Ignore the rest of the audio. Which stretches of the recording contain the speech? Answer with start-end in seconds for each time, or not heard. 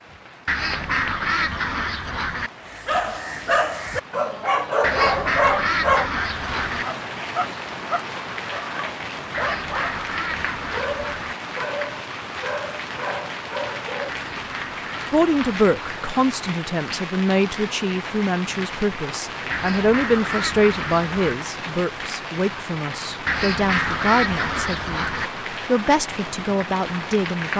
15.1-25.1, 25.6-27.5.